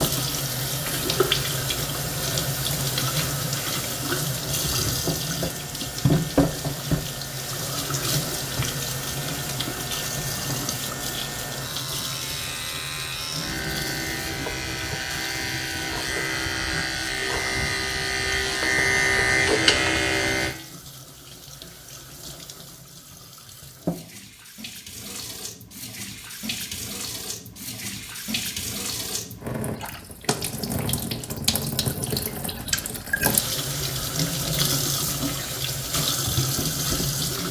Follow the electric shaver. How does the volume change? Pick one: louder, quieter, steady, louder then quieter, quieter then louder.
louder.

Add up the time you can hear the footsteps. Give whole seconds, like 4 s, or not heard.
not heard.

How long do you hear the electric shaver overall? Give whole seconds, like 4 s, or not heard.
20 s.